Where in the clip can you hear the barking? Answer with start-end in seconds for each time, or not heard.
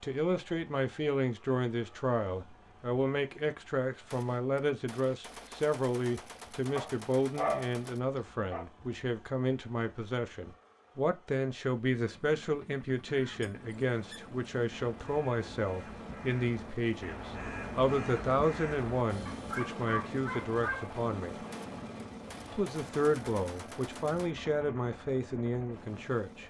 6.8-8.7, 19.2-20.9.